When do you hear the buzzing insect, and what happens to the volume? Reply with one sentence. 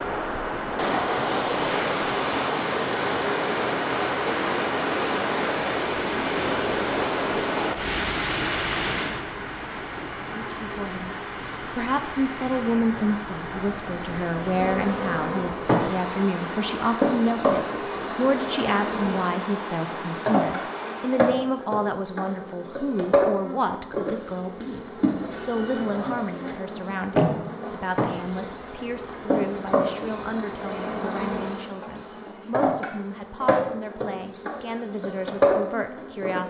You can hear the buzzing insect from 14.6 to 36.4 s, at a steady volume.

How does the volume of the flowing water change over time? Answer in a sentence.
The loudness of the flowing water goes down.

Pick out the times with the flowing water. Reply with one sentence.
The flowing water can be heard from 0.0 to 21.4 s.